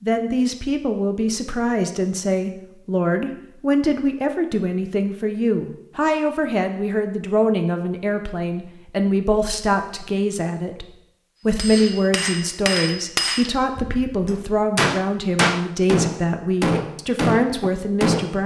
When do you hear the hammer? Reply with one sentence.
You can hear the hammer from 11.6 to 18.4 s.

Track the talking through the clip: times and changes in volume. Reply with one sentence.
You can hear the talking from 0.0 to 18.4 s, at a steady volume.